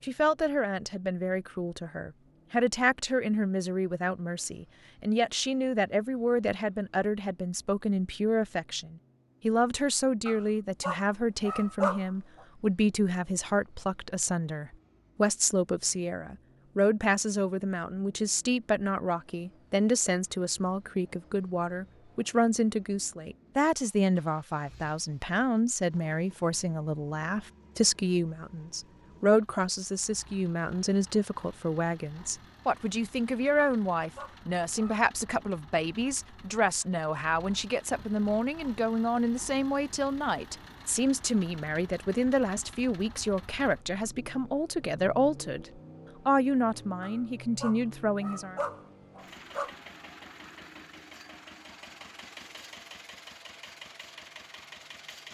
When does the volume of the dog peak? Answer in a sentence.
The volume of the dog peaks at 12 seconds.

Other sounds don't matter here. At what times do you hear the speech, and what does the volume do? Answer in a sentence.
The speech can be heard from 0.0 to 48.6 s, at a steady volume.